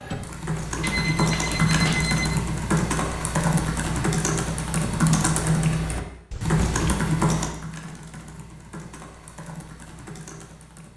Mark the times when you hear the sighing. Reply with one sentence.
The sighing can't be heard in this clip.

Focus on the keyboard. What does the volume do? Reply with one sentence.
The loudness of the keyboard goes down.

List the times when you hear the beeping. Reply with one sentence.
The beeping can be heard from 0.8 to 2.4 s and from 6.3 to 7.0 s.